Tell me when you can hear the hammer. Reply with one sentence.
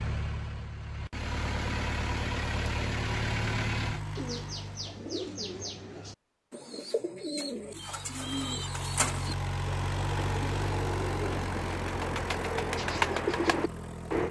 The hammer can't be heard in this clip.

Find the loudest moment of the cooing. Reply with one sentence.
The volume of the cooing peaks at 13 seconds.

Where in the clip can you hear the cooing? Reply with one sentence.
The cooing can be heard from 4.2 to 14.2 s.